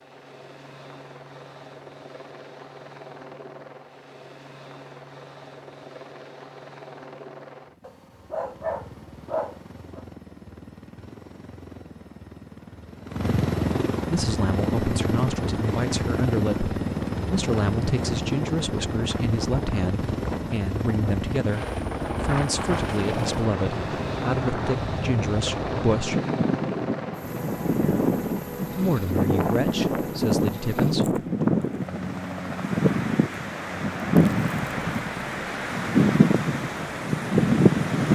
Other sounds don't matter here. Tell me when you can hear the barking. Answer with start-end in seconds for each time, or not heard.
7.8-10.0.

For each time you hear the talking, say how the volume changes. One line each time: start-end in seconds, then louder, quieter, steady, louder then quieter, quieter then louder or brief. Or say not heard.
14.1-26.2 steady
28.7-31.2 brief.